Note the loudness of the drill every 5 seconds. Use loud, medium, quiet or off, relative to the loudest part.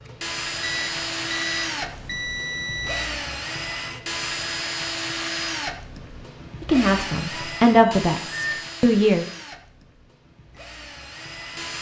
loud, loud, medium.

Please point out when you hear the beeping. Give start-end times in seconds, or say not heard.
0.6-3.1, 7.3-8.7.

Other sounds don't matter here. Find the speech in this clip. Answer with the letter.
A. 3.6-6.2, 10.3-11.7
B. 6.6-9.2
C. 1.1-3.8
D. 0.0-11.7
B.